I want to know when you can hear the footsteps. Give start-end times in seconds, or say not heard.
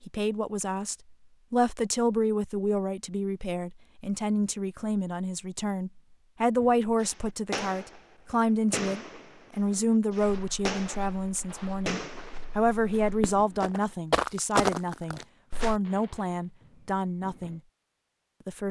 10.2-15.8.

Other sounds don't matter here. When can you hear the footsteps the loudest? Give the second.
15 s.